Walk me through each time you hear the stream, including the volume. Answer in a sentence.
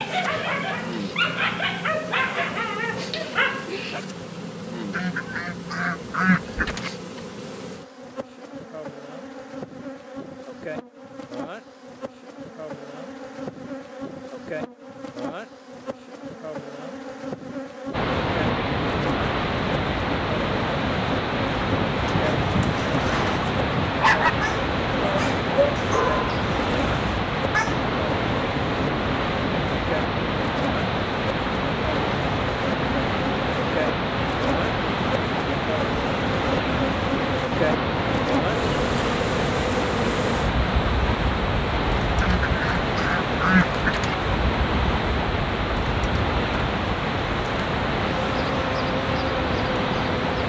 The stream can be heard from 17.9 to 50.4 s, at a steady volume.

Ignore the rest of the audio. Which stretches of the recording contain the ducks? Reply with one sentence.
The ducks can be heard from 4.9 to 6.9 s and from 42.2 to 44.1 s.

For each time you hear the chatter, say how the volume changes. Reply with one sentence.
You can't hear the chatter here.